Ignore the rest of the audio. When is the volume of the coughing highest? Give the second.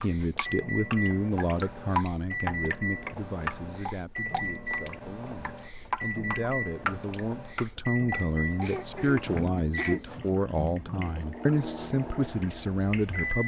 10 s.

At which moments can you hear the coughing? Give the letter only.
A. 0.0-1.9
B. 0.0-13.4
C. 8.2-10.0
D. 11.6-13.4
C.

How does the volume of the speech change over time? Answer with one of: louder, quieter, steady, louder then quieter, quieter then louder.
quieter then louder.